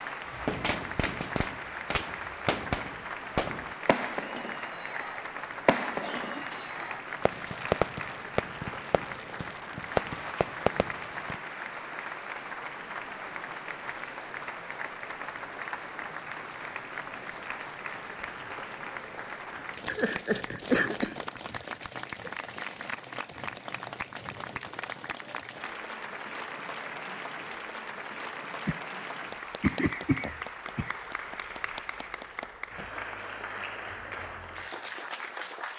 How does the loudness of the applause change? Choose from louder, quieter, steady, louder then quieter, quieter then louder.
steady.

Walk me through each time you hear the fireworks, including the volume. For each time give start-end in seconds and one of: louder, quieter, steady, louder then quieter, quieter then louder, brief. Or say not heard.
0.3-11.3 steady.